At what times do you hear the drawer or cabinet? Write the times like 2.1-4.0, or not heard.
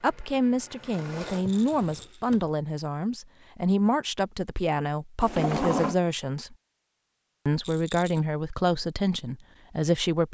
1.4-2.5, 5.2-6.0.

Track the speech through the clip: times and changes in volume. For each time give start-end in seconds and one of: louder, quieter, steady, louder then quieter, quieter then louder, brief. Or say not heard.
0.0-6.5 steady
7.5-10.2 brief.